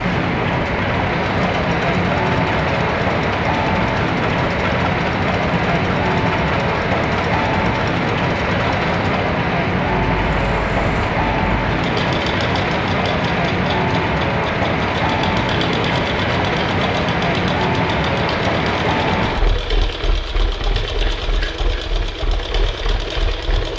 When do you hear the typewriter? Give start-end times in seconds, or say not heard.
not heard.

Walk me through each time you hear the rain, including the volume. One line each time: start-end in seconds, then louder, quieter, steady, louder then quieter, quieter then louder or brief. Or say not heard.
0.0-23.7 quieter.